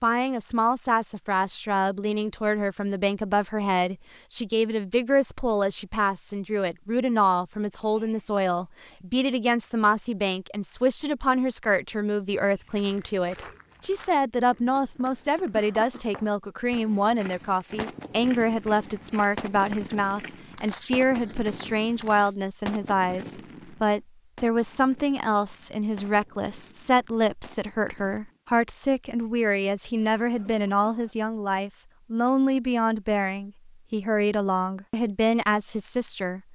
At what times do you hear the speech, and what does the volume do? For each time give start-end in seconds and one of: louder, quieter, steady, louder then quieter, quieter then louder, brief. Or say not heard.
0.0-36.5 steady.